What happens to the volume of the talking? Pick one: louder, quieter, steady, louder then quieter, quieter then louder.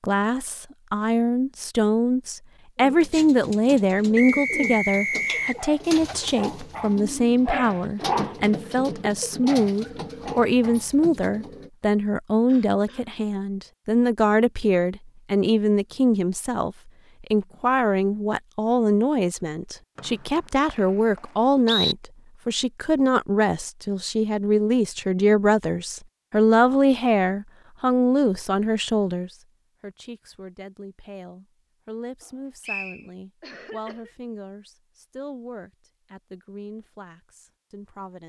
quieter.